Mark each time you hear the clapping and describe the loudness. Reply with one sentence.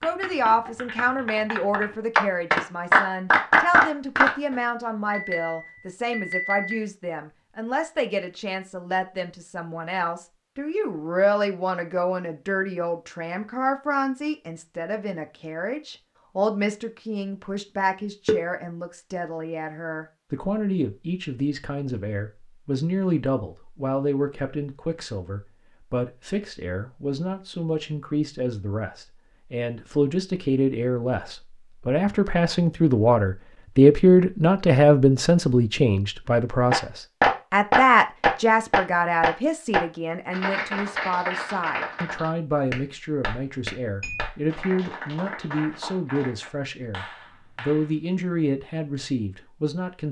You can hear the clapping from 0.0 to 4.3 s, getting louder; and from 36.7 to 48.0 s, getting quieter.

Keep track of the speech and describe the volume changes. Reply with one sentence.
The volume of the speech goes up, then down.